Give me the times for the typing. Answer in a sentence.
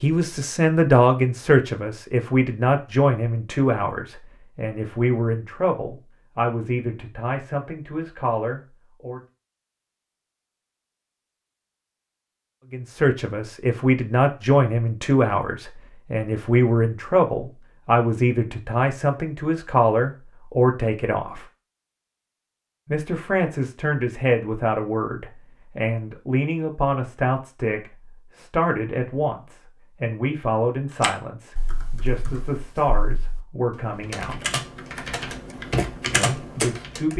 You can hear the typing from 31.0 to 37.1 s.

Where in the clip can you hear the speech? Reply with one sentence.
You can hear the speech from 0.0 to 9.2 s, from 12.7 to 21.4 s, from 22.9 to 34.4 s and from 36.1 to 37.1 s.